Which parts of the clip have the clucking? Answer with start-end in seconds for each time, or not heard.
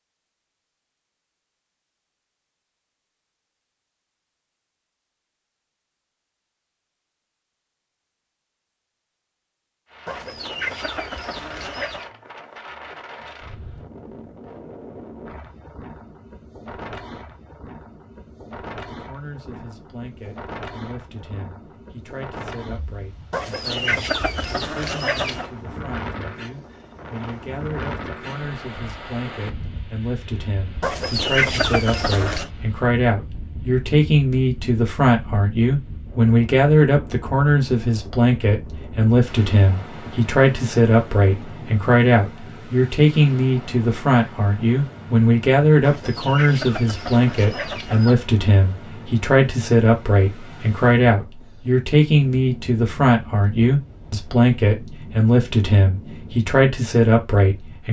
10.1-12.1, 23.3-25.4, 30.8-32.5, 45.8-48.1.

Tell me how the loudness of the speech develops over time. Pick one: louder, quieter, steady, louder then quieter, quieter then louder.
louder.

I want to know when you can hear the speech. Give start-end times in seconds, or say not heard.
18.9-57.8.